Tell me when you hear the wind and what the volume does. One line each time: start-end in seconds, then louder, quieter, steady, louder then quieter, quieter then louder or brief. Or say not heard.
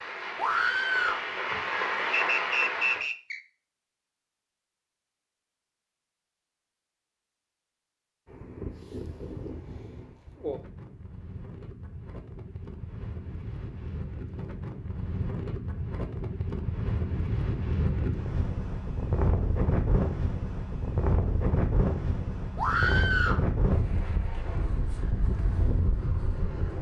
8.2-26.7 louder.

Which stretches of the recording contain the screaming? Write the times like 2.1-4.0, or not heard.
0.3-1.2, 22.6-23.4.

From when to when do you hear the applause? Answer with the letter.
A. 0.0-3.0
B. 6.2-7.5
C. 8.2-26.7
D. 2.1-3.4
A.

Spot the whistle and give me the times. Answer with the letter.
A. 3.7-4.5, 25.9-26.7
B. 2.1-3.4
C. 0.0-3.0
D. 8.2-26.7
B.